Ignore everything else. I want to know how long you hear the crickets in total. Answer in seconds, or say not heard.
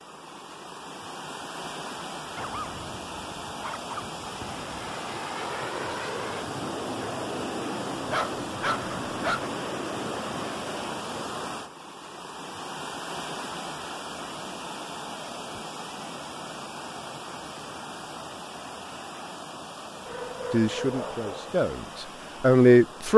not heard.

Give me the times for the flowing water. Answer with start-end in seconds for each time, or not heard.
0.0-23.1.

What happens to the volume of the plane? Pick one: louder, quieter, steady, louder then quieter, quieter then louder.
steady.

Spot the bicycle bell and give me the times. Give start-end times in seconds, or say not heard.
not heard.